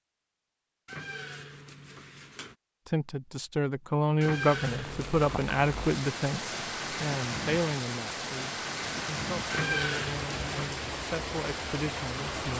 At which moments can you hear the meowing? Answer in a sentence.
The meowing can be heard from 0.8 to 2.5 s, from 4.2 to 5.4 s and from 9.5 to 10.8 s.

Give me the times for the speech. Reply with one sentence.
The speech can be heard from 2.9 to 12.5 s.